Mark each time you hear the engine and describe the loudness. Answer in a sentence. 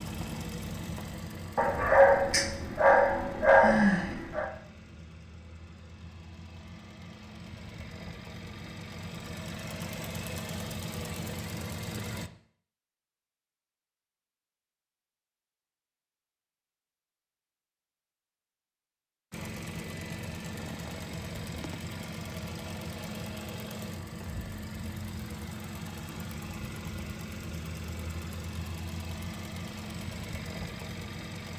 You can hear the engine from 0.0 to 12.3 s, getting quieter then louder; and from 19.3 to 31.5 s, at a steady volume.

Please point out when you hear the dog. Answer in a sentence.
You can hear the dog from 1.6 to 4.5 s.